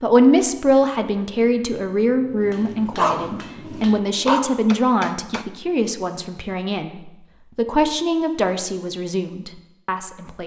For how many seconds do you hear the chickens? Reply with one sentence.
The chickens can't be heard in this clip.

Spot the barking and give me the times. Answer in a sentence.
The barking can be heard from 2.4 to 4.4 s.